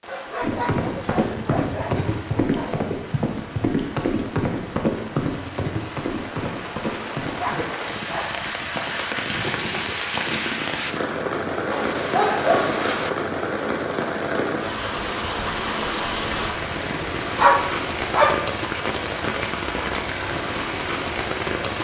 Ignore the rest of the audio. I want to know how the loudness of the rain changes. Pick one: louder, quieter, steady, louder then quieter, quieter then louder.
louder.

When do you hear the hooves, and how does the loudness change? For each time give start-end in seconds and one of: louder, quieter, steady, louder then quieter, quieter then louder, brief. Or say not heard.
0.4-11.1 quieter.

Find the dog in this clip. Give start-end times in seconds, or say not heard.
0.1-2.8, 7.3-8.4, 11.7-13.1, 16.9-18.5.